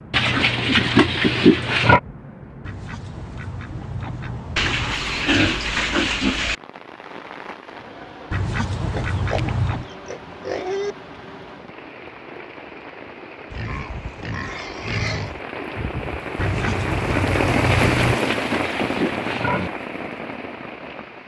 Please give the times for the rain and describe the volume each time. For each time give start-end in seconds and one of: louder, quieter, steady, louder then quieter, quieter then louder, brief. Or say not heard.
0.0-21.2 louder.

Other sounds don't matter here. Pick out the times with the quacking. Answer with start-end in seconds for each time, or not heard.
2.6-5.0, 8.3-9.9, 16.4-18.2.